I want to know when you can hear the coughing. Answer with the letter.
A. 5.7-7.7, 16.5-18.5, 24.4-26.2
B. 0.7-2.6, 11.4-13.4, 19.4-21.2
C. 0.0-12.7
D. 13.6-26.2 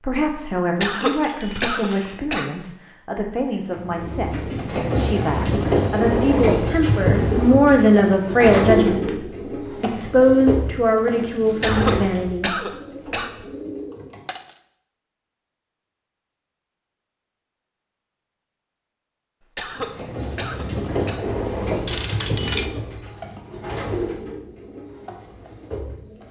B.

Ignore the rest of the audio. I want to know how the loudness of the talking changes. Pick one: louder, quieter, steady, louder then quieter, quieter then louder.
louder.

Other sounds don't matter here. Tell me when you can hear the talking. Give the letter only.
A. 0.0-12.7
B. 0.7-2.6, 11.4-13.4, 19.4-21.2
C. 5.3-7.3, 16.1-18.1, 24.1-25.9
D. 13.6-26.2
A.